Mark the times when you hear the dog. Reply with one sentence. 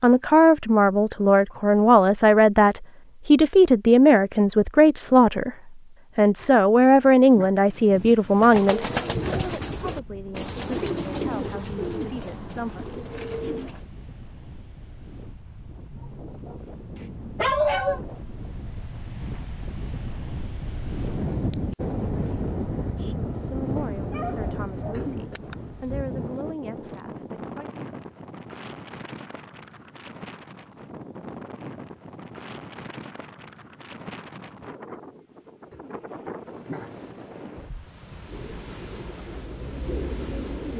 The dog can be heard from 15.9 to 16.6 s, from 17.4 to 18.0 s and from 23.9 to 25.1 s.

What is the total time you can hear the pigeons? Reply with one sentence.
You can hear the pigeons for 8 seconds altogether.